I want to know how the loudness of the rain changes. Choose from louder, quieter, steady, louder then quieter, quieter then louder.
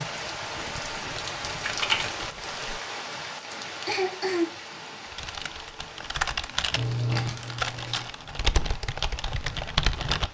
quieter.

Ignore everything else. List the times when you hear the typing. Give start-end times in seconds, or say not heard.
0.1-2.8, 5.0-10.2.